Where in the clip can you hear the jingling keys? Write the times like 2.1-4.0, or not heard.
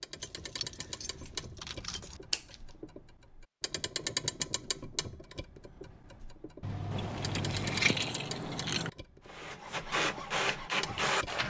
0.2-2.2, 6.9-8.9.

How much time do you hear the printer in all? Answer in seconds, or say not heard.
2 s.